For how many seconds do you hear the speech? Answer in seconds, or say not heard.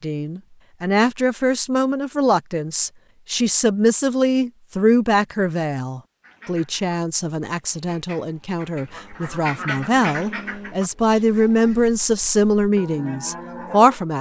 14 s.